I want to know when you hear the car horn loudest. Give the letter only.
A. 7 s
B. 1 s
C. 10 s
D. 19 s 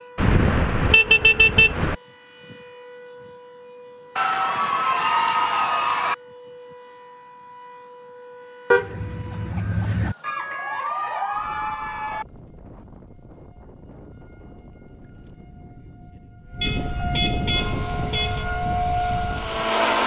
B.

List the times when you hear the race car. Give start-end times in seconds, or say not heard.
17.5-20.0.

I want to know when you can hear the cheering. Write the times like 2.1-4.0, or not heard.
4.2-6.2, 10.2-12.2.